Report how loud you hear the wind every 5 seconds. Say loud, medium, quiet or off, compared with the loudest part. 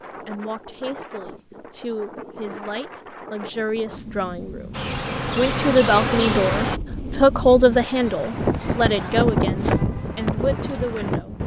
quiet, loud, loud.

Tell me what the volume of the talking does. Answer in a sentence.
The volume of the talking goes up, then down.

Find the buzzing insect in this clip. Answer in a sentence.
The buzzing insect can be heard from 4.7 to 6.8 s.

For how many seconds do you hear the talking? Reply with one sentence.
The talking can be heard for 11 seconds in total.